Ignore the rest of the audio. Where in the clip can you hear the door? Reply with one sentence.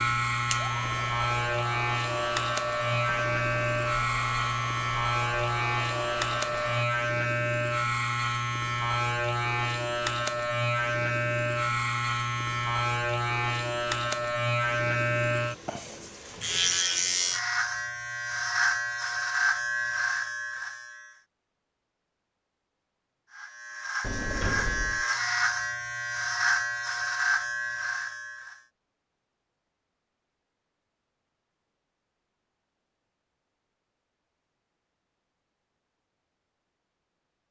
The door can be heard from 24.0 to 25.1 s.